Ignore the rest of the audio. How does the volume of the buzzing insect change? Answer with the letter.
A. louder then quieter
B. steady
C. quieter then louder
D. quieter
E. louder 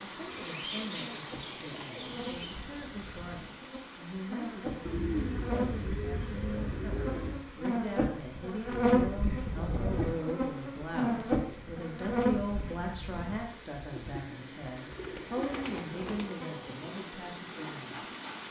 A.